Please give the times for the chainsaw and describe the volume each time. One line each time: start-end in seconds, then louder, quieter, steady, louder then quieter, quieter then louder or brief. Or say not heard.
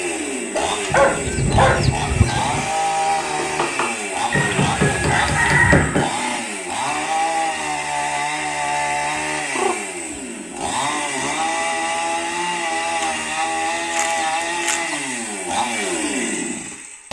0.0-17.0 steady.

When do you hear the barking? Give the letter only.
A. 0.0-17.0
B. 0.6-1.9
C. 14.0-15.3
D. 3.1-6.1
B.